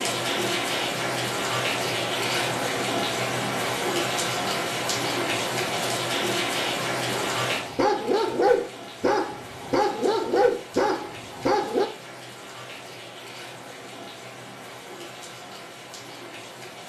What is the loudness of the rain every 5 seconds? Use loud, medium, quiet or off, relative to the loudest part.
loud, loud, quiet, quiet.